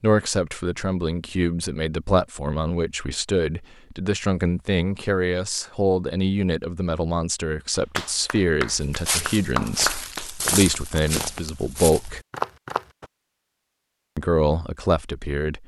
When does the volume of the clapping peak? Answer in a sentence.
The volume of the clapping peaks at 10 seconds.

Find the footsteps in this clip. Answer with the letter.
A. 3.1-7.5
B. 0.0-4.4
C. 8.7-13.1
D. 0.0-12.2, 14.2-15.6
C.